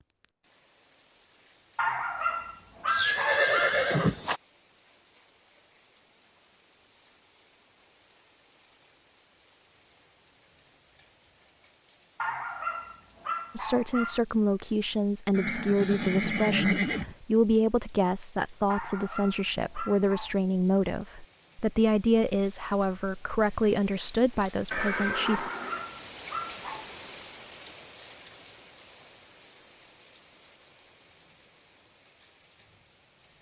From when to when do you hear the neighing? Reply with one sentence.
The neighing can be heard from 2.9 to 4.4 s, from 15.3 to 17.1 s and from 24.7 to 25.9 s.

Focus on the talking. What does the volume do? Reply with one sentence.
The volume of the talking stays about the same.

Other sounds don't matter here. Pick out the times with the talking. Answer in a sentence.
The talking can be heard from 13.6 to 25.5 s.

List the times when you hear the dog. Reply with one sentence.
You can hear the dog from 1.8 to 3.8 s, from 12.2 to 14.2 s, from 18.6 to 20.4 s and from 25.2 to 26.9 s.